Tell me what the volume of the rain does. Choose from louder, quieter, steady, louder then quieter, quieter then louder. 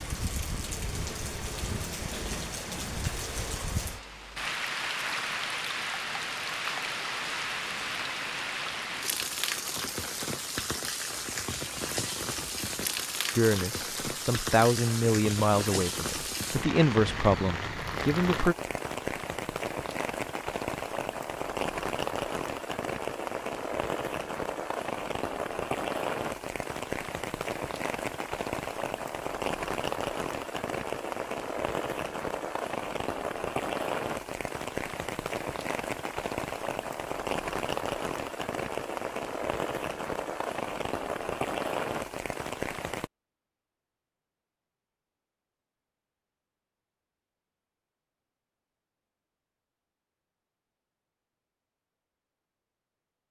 steady.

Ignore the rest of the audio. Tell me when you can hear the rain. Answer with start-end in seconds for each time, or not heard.
0.0-43.1.